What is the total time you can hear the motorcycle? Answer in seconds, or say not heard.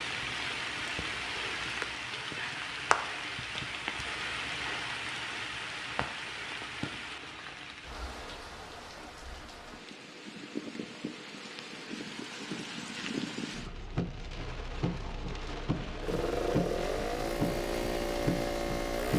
3 s.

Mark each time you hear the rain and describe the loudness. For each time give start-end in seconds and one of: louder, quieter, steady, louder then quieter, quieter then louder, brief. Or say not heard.
0.0-19.1 quieter then louder.